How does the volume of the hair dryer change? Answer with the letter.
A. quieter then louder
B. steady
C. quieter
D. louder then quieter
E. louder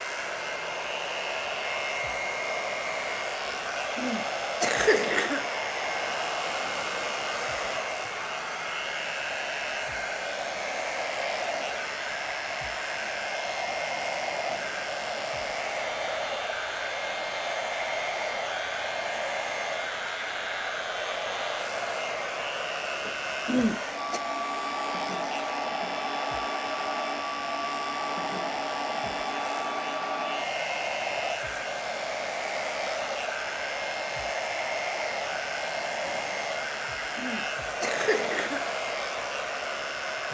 B.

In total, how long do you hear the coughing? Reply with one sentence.
You can hear the coughing for 4 seconds altogether.